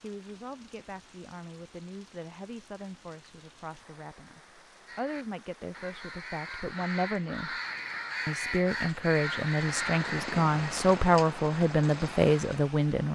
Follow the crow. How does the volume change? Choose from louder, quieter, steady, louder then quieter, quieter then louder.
louder.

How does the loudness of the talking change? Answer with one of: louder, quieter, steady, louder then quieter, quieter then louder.
louder.